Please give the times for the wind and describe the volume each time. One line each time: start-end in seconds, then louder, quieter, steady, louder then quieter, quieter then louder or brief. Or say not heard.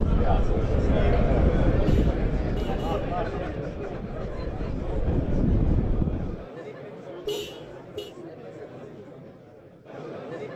0.0-6.5 quieter then louder.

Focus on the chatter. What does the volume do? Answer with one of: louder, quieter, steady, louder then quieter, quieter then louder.
quieter.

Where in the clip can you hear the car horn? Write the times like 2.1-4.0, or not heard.
1.9-3.1, 7.2-8.1.